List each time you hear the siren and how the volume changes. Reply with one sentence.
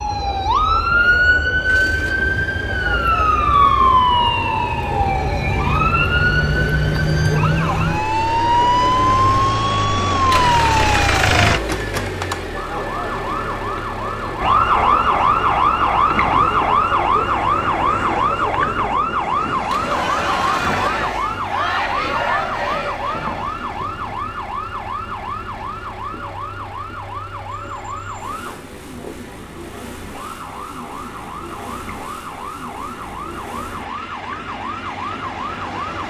The siren can be heard from 0.0 to 36.0 s, getting quieter.